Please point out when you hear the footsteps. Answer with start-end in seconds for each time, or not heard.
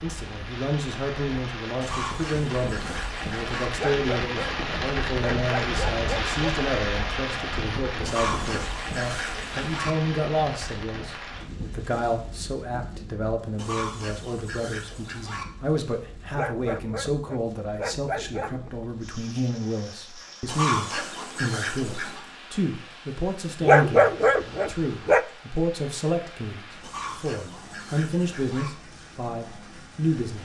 not heard.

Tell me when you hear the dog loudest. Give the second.
24 s.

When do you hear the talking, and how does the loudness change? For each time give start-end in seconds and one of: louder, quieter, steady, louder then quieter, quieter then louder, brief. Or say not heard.
0.0-30.4 steady.